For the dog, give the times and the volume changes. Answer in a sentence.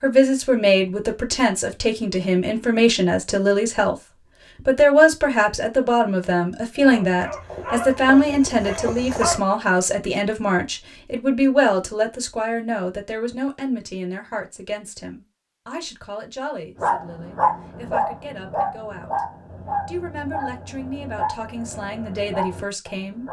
You can hear the dog briefly from 6.8 to 9.4 s; and from 16.8 to 23.2 s, getting quieter.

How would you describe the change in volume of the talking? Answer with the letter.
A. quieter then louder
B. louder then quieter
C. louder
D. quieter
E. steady
D.